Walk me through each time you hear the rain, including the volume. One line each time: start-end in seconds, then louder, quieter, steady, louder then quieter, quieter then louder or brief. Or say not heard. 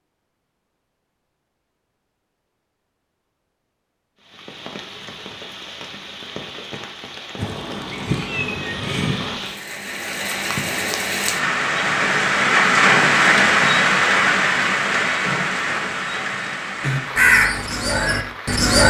4.2-18.6 louder then quieter.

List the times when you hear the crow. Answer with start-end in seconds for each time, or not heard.
16.8-18.8.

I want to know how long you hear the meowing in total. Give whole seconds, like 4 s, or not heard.
2 s.